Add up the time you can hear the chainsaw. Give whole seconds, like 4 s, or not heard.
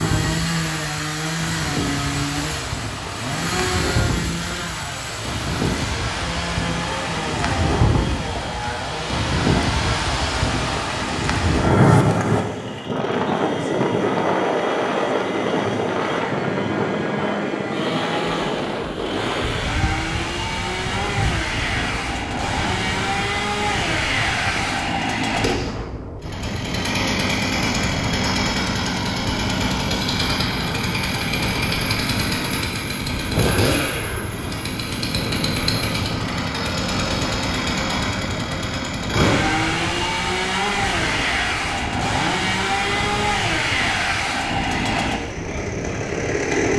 47 s.